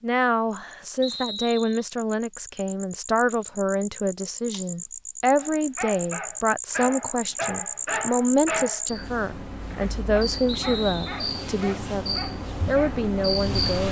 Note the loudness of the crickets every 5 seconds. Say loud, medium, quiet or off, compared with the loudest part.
medium, loud, loud.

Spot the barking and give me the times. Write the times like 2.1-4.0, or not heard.
5.4-8.9, 9.6-13.1.